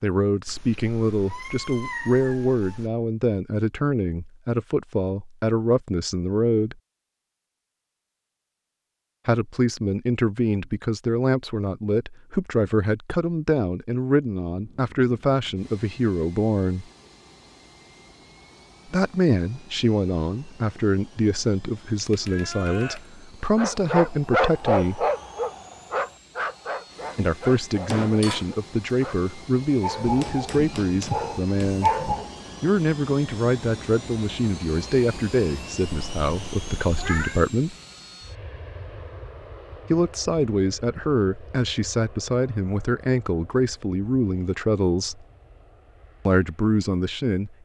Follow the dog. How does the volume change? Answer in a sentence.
The volume of the dog goes down, then up.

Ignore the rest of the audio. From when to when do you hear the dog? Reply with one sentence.
You can hear the dog from 23.6 to 32.3 s.